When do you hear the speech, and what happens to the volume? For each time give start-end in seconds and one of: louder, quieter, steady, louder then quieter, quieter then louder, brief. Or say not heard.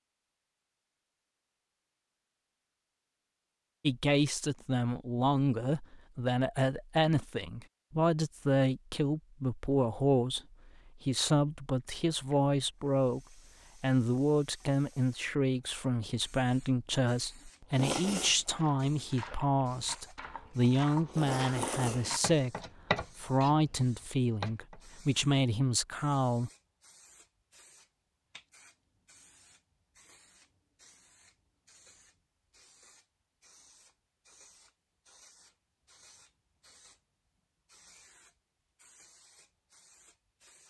3.8-10.4 steady
11.1-13.2 brief
13.8-26.5 steady.